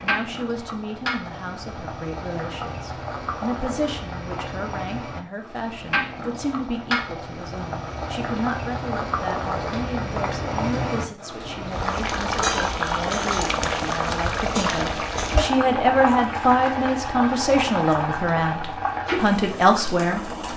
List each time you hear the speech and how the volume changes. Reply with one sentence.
You can hear the speech from 0.0 to 20.3 s, getting louder.